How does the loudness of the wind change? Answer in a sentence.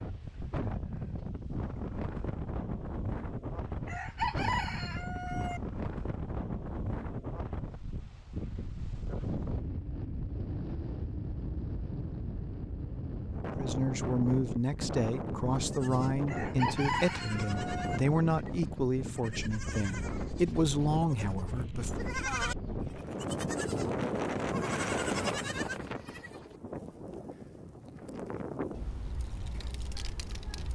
The volume of the wind stays about the same.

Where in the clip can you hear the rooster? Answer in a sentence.
You can hear the rooster from 3.9 to 5.6 s and from 16.2 to 18.0 s.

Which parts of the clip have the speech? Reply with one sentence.
You can hear the speech from 13.6 to 22.1 s.